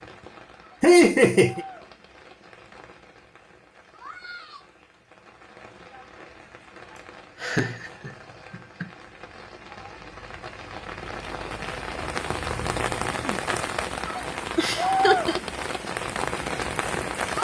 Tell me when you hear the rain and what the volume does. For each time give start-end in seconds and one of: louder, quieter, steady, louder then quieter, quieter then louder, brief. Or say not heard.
0.0-17.3 louder.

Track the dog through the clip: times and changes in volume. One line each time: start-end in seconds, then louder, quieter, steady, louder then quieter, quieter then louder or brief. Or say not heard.
not heard.